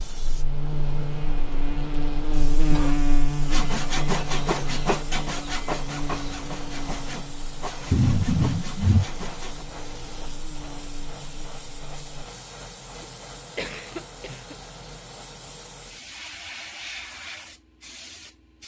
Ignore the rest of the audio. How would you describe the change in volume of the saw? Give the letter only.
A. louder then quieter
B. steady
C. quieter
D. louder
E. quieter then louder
C.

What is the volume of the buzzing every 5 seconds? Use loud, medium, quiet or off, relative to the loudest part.
loud, medium, quiet, off.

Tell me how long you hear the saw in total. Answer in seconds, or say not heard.
6 s.